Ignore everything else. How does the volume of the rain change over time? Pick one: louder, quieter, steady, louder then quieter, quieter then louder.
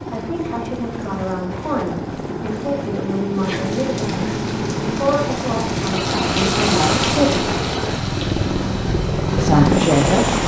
louder then quieter.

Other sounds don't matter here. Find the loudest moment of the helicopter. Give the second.
10 s.